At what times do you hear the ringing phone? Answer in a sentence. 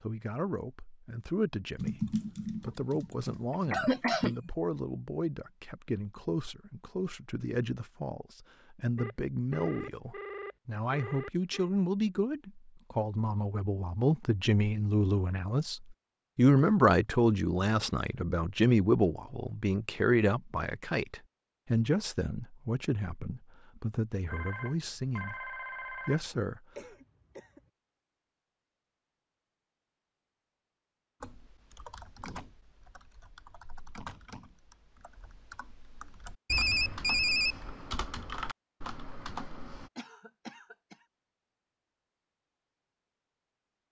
The ringing phone can be heard from 8.9 to 11.7 s, from 24.3 to 26.3 s and from 36.5 to 37.8 s.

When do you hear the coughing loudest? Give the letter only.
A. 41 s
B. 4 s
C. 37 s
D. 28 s
B.